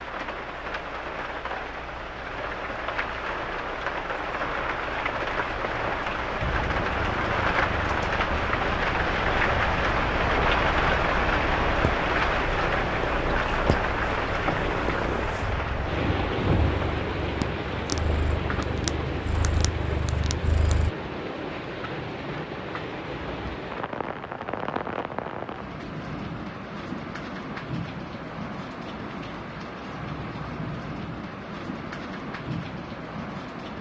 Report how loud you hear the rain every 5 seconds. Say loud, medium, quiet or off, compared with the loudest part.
medium, loud, loud, medium, medium, medium, medium.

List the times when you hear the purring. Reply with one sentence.
You can hear the purring from 6.4 to 20.9 s.